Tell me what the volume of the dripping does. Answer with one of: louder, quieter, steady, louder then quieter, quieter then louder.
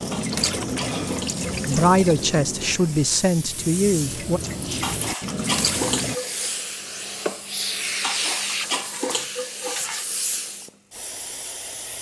quieter then louder.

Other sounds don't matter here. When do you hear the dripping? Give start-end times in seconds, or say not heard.
0.0-6.2.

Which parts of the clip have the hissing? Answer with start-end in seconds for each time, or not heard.
0.0-11.9.